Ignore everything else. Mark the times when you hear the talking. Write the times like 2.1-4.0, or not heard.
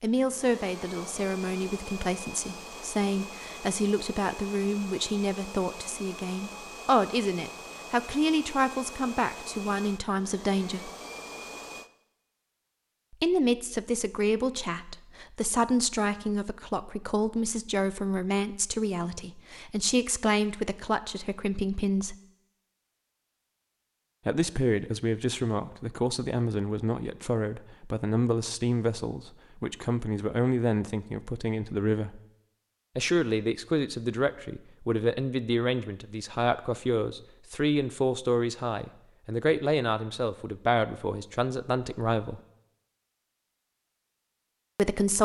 0.0-10.9, 13.1-22.1, 24.2-32.2, 33.0-42.4, 44.8-45.2.